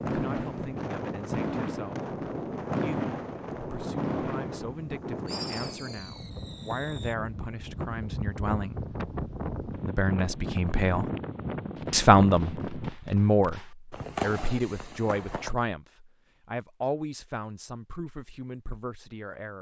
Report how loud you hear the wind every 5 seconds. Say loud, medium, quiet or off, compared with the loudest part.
loud, loud, loud, off.